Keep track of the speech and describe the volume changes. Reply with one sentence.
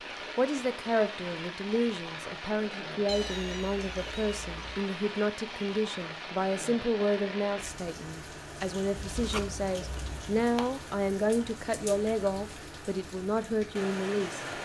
The loudness of the speech stays about the same.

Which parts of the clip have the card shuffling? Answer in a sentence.
You can hear the card shuffling from 8.9 to 10.4 s.